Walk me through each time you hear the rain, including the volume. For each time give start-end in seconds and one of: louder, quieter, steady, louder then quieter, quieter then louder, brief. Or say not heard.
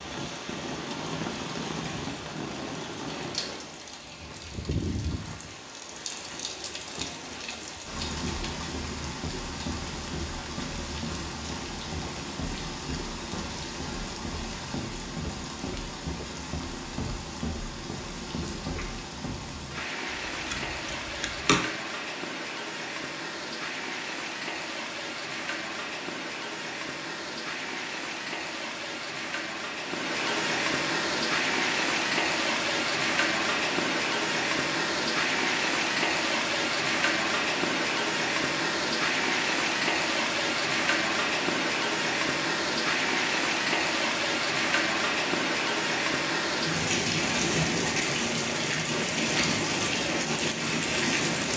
0.0-51.5 louder.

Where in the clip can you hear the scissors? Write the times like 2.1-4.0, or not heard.
20.2-21.6.